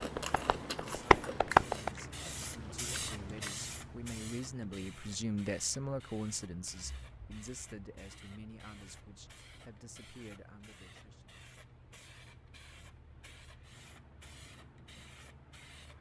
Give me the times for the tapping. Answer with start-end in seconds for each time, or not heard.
0.0-1.9.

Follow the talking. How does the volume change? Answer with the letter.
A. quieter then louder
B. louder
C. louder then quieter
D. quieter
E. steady
C.